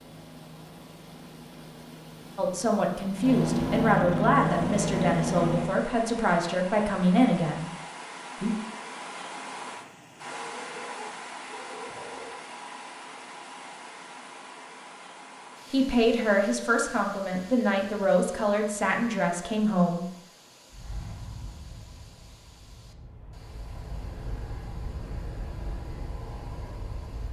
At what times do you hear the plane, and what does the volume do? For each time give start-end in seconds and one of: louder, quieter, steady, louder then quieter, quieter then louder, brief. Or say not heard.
0.0-5.8 louder
20.7-27.2 quieter then louder.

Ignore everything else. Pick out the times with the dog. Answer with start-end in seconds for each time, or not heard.
10.3-12.3.